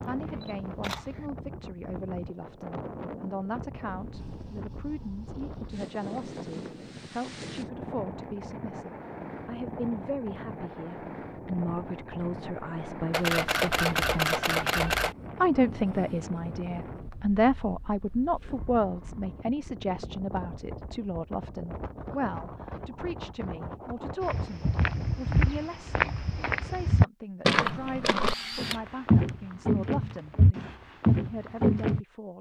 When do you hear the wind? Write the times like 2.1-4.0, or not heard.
0.0-25.2.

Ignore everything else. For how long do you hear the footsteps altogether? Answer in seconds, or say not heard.
8 s.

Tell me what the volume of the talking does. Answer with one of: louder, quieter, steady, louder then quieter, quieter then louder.
louder then quieter.